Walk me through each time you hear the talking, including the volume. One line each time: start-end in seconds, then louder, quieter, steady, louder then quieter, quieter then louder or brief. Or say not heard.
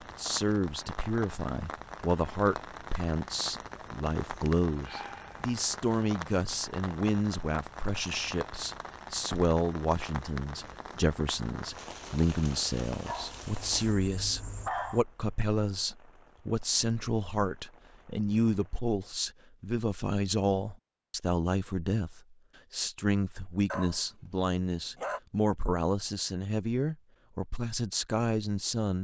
0.1-29.0 steady.